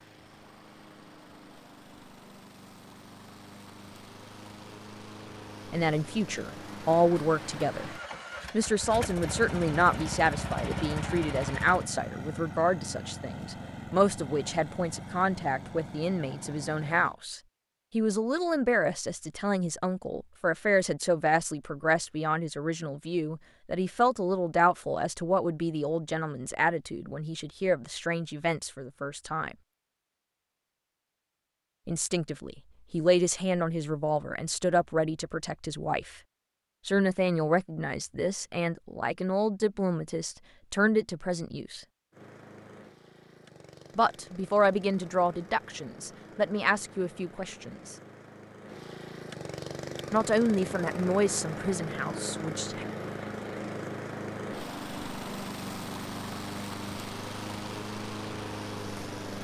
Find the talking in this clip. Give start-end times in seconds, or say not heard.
5.7-7.9, 8.5-29.6, 31.9-36.1, 36.9-41.8, 44.0-48.0, 50.1-52.9.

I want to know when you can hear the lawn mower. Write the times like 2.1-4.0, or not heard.
0.0-17.1, 42.1-59.3.